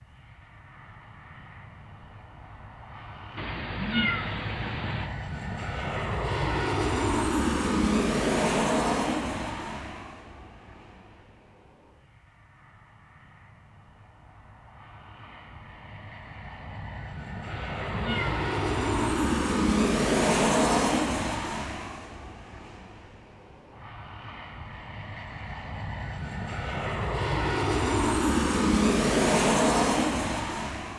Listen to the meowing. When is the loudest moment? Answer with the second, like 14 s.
4 s.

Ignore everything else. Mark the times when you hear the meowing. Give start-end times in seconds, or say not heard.
3.4-5.1, 17.5-19.2.